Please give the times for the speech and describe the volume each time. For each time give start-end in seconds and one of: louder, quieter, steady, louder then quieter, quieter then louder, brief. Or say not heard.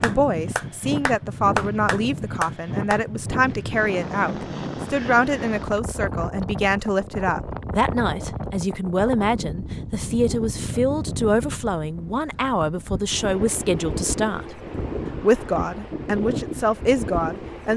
0.0-14.6 steady
15.2-17.7 brief.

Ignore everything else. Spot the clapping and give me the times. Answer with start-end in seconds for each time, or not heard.
0.0-3.0.